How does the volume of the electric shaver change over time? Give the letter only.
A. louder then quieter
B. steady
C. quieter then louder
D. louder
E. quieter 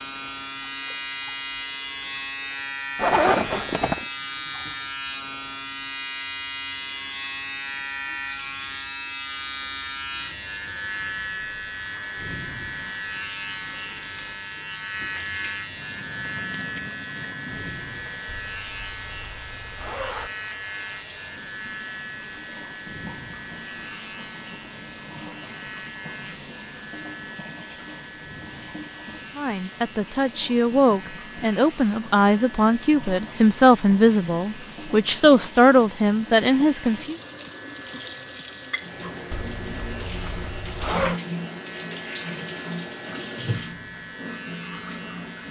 E.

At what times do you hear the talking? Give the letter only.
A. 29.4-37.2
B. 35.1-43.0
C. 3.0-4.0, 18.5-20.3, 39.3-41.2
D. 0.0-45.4
A.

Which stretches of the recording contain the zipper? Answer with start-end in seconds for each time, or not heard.
3.0-4.0, 18.5-20.3, 39.3-41.2.